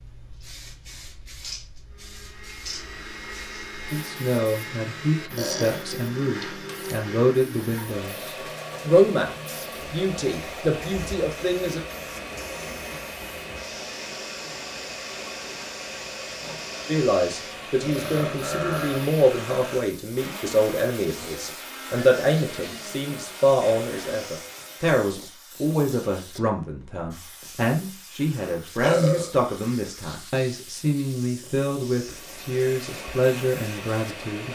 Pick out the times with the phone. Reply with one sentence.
The phone can't be heard in this clip.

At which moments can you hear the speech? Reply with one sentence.
You can hear the speech from 3.9 to 11.8 s and from 16.9 to 34.5 s.